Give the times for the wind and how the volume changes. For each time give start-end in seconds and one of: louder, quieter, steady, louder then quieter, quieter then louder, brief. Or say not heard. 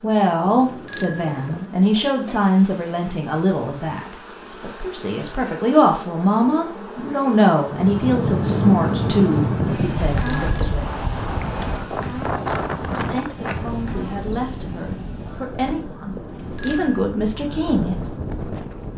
7.7-18.9 quieter.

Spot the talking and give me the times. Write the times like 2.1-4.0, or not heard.
0.0-10.9, 12.9-17.9.